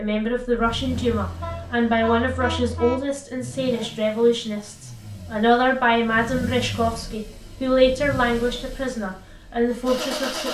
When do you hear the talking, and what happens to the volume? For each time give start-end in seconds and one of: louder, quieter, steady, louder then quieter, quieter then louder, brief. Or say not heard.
0.0-10.5 steady.